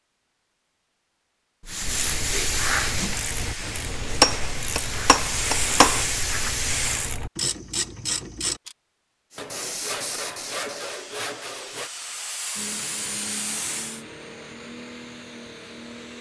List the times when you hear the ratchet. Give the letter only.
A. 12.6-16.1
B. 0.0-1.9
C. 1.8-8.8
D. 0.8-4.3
C.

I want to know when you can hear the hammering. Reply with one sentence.
You can hear the hammering from 4.2 to 6.0 s.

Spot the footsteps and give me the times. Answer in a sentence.
You can't hear the footsteps here.